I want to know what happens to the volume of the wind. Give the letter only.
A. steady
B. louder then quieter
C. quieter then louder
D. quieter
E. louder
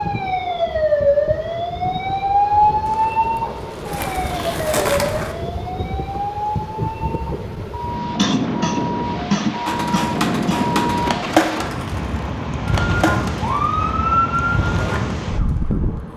E.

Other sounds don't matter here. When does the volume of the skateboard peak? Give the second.
11 s.